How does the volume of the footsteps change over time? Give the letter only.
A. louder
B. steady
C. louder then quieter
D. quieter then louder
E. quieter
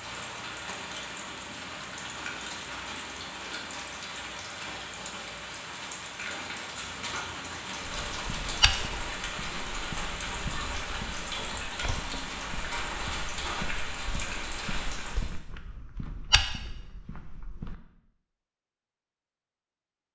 D.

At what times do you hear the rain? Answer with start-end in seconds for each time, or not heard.
0.0-15.4.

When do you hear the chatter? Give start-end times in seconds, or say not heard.
not heard.